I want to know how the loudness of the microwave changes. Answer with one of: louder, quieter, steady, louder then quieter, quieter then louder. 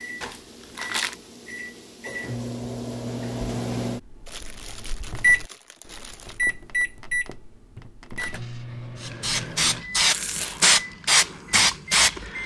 louder then quieter.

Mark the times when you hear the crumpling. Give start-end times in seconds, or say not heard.
0.2-1.1, 4.2-6.4, 10.1-10.7.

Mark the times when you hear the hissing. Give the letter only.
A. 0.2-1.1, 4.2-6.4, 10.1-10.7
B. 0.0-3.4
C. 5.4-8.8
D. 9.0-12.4
D.